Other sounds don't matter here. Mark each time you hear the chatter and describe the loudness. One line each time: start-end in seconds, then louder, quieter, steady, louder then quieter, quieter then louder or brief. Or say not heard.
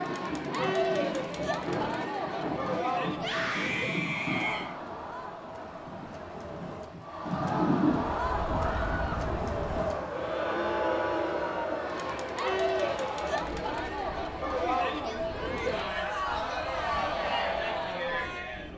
0.0-18.7 quieter then louder.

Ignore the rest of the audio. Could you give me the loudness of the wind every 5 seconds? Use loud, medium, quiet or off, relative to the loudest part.
loud, loud, medium, quiet.